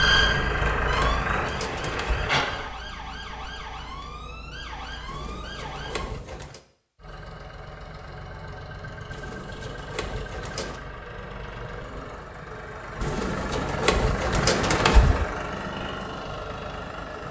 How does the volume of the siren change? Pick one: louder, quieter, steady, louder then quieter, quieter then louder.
quieter.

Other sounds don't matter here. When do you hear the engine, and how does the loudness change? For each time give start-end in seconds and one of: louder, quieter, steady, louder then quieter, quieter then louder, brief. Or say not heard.
0.0-2.7 brief
7.0-17.2 louder.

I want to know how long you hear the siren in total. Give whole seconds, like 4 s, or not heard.
6 s.